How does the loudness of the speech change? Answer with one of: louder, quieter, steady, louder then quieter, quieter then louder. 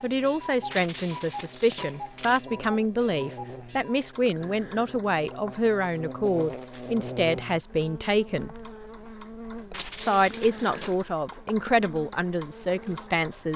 steady.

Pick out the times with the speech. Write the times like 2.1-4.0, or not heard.
0.0-8.7, 9.9-13.5.